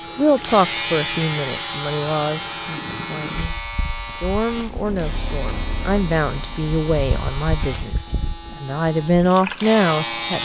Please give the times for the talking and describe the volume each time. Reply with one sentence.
The talking can be heard from 0.1 to 10.3 s, getting quieter then louder.